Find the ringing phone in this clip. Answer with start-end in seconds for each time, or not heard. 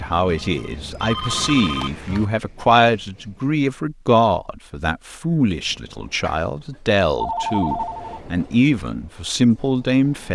0.3-2.2, 6.2-8.2.